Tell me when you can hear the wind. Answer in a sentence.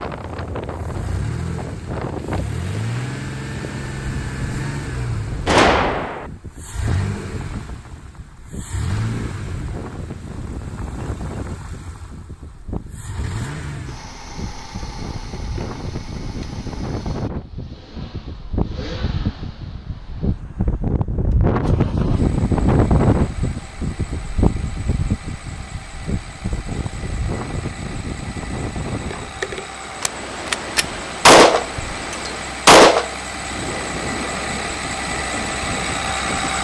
You can hear the wind from 0.0 to 36.5 s.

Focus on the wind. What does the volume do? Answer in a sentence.
The volume of the wind goes up, then down.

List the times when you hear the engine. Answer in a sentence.
You can hear the engine from 0.0 to 36.5 s.